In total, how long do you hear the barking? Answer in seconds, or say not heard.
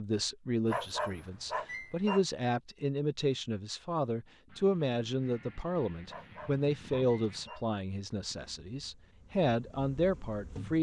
3 s.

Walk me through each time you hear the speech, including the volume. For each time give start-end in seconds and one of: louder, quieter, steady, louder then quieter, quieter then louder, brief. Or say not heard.
0.0-10.7 steady.